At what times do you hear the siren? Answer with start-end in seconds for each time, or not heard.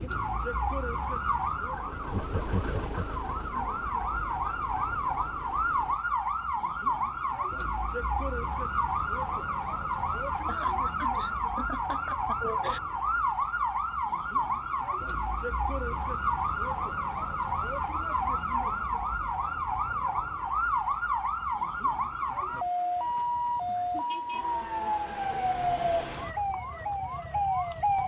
0.0-28.0.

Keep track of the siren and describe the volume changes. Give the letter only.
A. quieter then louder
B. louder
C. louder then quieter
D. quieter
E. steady
E.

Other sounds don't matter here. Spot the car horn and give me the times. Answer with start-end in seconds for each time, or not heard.
not heard.